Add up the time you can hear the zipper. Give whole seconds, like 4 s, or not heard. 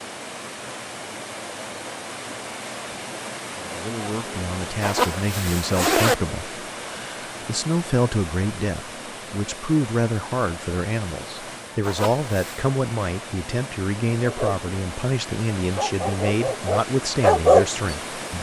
2 s.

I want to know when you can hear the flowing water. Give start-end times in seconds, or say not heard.
0.0-18.3.